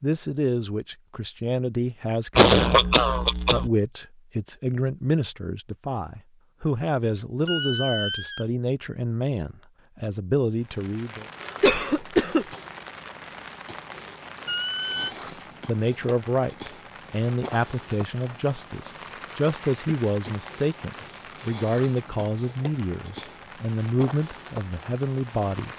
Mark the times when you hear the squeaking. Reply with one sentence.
You can hear the squeaking from 7.5 to 8.4 s and from 14.4 to 15.2 s.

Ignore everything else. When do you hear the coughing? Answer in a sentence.
You can hear the coughing from 2.4 to 3.7 s, from 11.6 to 12.4 s and from 19.6 to 20.4 s.